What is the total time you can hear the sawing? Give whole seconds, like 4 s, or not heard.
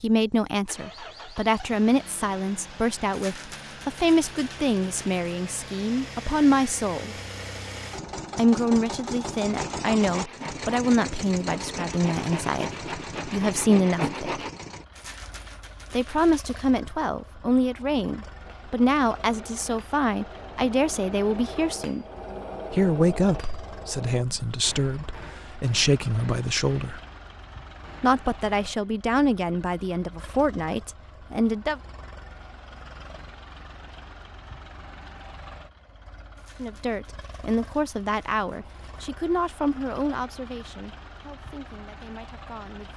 5 s.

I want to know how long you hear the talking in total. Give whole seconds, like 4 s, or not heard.
34 s.